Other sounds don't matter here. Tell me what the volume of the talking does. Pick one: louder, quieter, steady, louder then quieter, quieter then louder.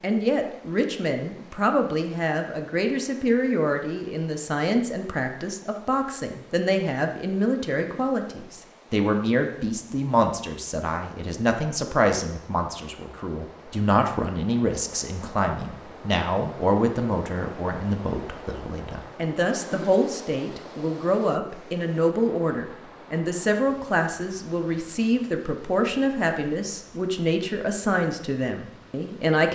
steady.